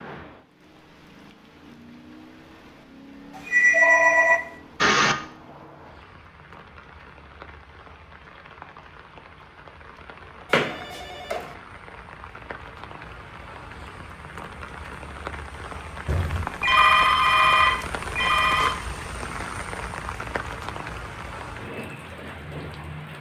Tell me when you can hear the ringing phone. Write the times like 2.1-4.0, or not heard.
3.4-5.2, 10.5-11.5, 16.1-18.8.